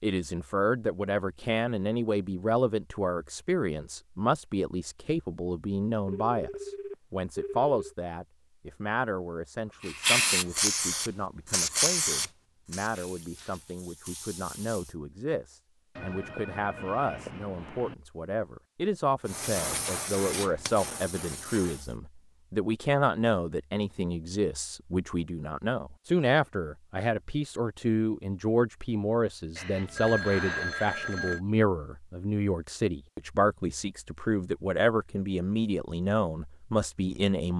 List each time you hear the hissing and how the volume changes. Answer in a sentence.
You can hear the hissing from 9.8 to 14.9 s, getting quieter; and briefly from 19.2 to 21.9 s.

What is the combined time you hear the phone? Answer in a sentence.
The phone can be heard for 6 seconds in total.